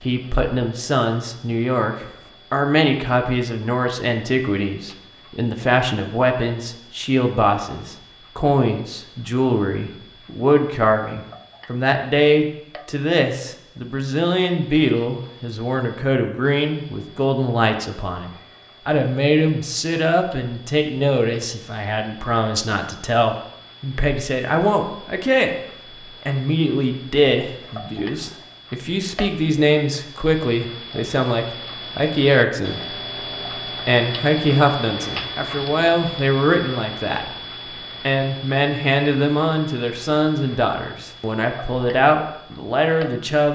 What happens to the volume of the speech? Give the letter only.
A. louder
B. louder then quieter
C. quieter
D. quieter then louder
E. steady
E.